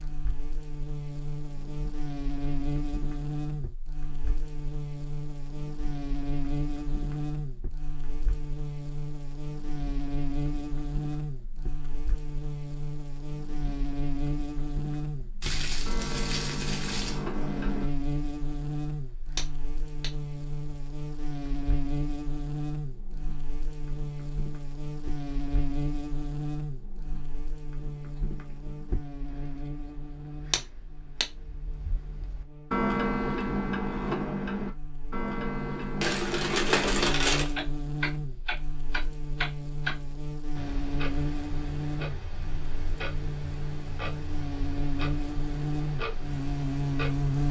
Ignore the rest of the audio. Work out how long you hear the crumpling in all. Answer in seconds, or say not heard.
3 s.